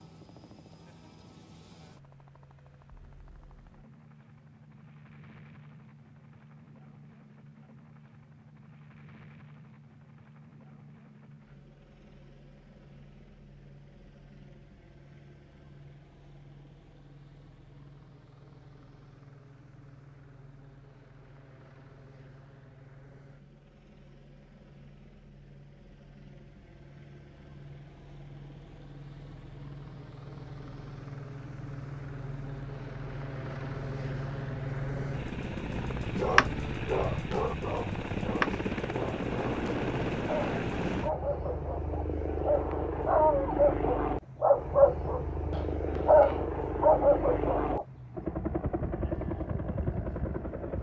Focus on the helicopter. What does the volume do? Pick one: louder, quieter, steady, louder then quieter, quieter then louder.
louder.